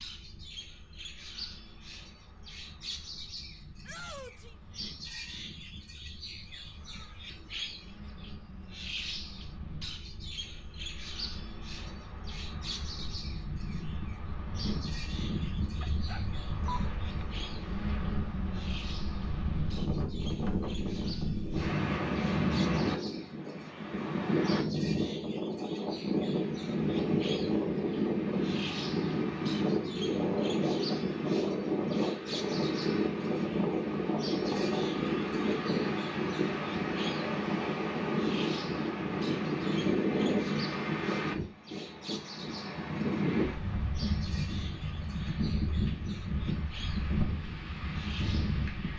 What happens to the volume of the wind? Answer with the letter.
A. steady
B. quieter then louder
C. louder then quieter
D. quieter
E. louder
E.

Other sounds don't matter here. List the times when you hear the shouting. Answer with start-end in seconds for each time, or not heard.
3.9-4.5.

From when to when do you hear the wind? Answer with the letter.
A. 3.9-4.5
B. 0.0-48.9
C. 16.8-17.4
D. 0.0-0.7
B.